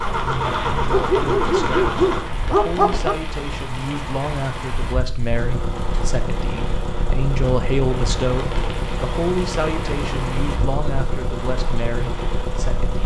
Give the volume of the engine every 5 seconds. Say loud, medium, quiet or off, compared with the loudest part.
loud, medium, medium.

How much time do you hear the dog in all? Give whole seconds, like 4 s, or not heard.
2 s.